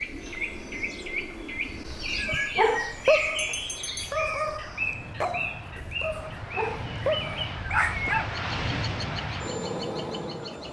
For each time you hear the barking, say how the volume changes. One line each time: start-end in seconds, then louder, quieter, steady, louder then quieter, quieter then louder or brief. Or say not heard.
2.2-8.3 quieter then louder.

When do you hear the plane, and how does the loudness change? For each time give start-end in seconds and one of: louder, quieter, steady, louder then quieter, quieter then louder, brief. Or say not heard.
0.1-10.6 louder.